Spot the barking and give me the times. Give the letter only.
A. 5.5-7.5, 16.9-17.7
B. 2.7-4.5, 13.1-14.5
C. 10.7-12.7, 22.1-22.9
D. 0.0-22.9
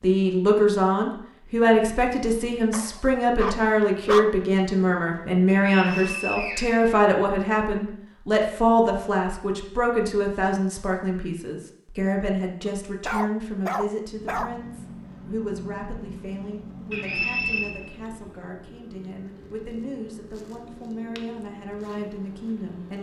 B.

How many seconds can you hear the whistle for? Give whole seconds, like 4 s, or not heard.
3 s.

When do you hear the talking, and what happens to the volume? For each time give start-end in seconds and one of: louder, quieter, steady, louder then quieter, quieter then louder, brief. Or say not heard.
0.0-22.9 quieter.